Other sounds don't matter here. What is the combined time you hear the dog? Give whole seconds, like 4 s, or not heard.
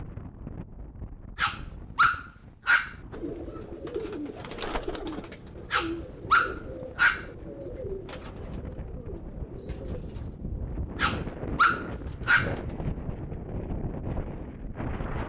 5 s.